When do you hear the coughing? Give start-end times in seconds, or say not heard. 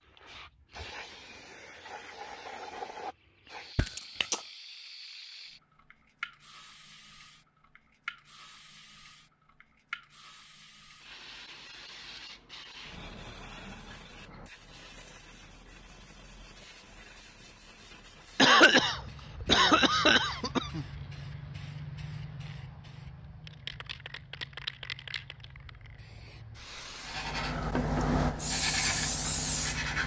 3.8-4.4, 18.4-20.9.